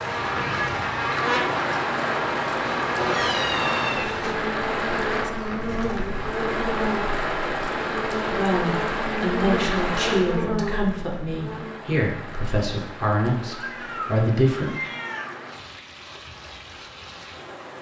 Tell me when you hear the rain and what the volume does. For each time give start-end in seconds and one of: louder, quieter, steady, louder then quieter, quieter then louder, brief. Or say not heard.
0.0-17.7 quieter.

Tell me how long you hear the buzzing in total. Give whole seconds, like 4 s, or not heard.
12 s.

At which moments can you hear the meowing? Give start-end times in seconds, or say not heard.
3.0-4.3, 13.4-15.4.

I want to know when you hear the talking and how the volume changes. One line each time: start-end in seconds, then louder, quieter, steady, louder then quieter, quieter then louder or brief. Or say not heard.
8.2-14.7 steady.